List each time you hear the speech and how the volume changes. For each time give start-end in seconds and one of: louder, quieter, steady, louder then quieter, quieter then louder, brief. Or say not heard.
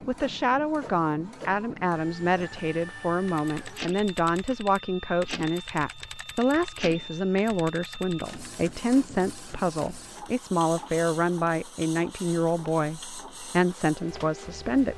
0.1-14.9 steady.